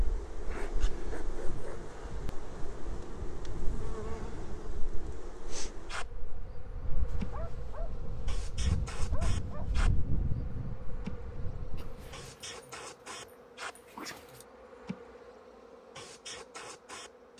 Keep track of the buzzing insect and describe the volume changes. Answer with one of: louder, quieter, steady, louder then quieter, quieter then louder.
steady.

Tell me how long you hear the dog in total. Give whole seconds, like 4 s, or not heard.
7 s.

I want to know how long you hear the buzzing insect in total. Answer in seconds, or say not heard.
17 s.